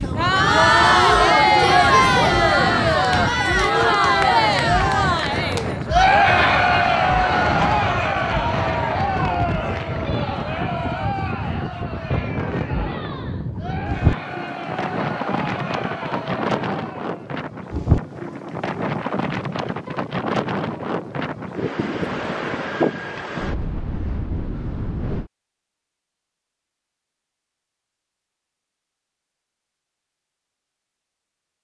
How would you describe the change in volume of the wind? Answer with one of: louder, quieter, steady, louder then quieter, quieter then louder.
steady.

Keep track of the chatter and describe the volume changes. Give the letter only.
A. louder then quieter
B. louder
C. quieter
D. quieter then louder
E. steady
C.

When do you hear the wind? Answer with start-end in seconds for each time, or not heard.
0.0-25.3.